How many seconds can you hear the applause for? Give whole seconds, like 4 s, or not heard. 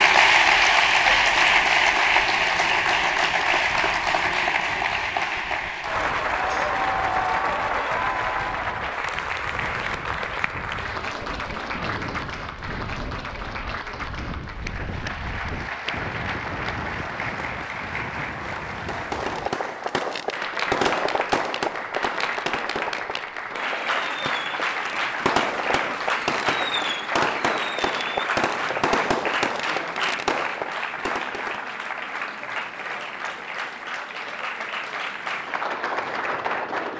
37 s.